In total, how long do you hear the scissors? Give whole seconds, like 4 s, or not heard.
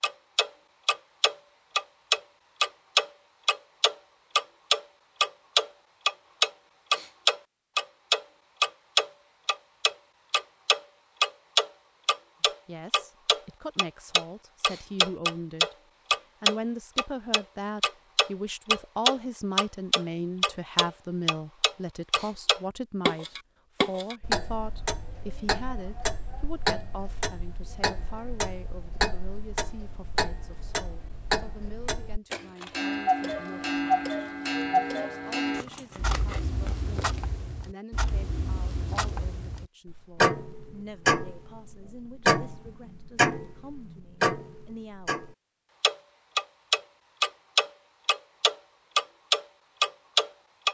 2 s.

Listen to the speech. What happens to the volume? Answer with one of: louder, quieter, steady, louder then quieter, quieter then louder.
quieter.